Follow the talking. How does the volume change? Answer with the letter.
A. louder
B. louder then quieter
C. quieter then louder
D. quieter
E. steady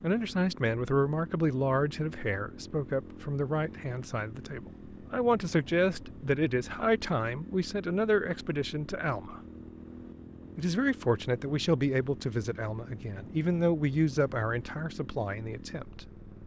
E.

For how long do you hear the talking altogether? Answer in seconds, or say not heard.
15 s.